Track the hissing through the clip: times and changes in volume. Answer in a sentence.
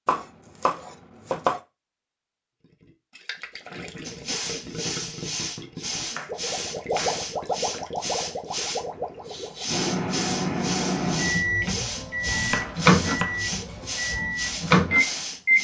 The hissing can be heard from 4.0 to 15.5 s, at a steady volume.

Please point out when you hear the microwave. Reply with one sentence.
You can hear the microwave from 9.7 to 15.5 s.